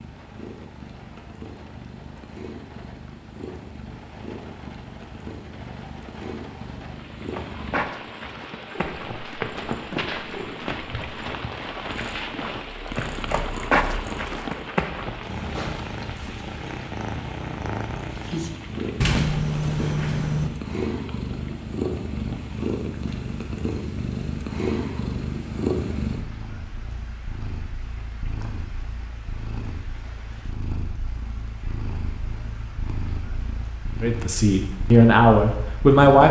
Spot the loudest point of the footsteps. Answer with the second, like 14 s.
14 s.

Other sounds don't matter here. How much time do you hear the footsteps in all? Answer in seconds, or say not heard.
8 s.